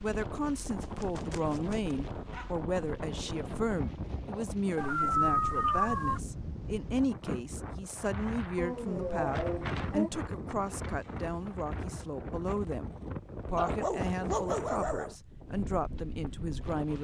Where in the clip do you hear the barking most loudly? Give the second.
5 s.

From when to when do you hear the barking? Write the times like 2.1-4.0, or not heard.
0.8-2.5, 4.8-6.2, 8.6-10.1, 13.6-15.2.